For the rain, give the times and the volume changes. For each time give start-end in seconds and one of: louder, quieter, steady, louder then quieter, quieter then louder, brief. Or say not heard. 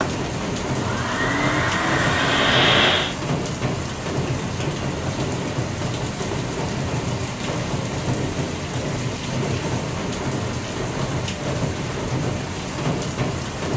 0.0-13.7 steady.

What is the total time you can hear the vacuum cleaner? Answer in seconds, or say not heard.
3 s.